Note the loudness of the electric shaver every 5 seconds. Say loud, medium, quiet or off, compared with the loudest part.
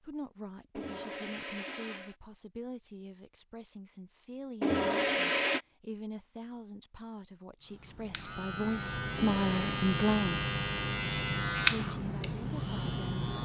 off, medium, loud.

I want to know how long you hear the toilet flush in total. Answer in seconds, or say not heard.
3 s.